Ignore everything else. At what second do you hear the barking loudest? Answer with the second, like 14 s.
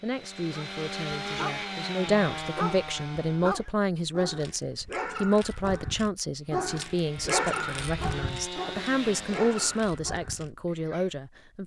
7 s.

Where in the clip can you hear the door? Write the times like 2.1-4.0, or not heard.
not heard.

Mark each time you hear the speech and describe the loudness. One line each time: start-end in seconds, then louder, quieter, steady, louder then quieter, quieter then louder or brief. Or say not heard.
0.0-11.6 steady.